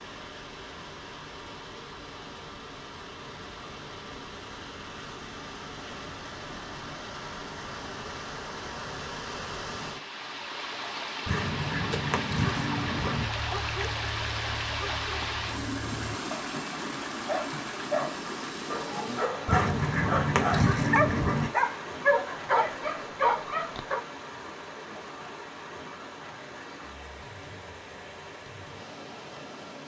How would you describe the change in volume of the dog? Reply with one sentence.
The volume of the dog goes up.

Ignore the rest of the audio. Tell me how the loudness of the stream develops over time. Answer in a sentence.
The loudness of the stream goes up, then down.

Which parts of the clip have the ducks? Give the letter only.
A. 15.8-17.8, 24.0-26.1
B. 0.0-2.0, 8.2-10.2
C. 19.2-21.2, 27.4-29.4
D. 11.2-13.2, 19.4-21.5
D.